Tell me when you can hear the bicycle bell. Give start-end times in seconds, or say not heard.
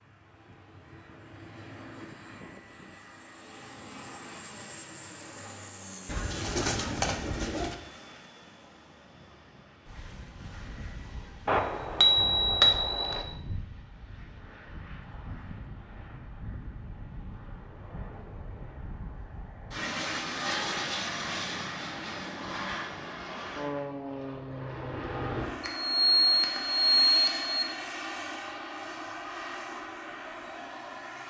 11.4-13.2, 25.6-27.6.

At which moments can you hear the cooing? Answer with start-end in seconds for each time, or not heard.
6.0-7.8.